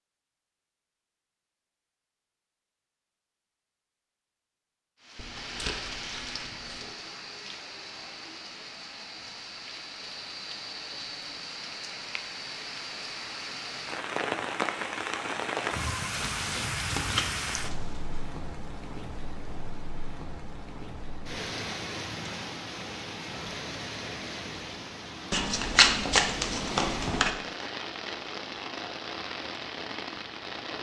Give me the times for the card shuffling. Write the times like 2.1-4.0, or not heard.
5.2-7.0, 16.1-18.2, 25.3-27.4.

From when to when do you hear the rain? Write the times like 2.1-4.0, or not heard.
5.0-30.7.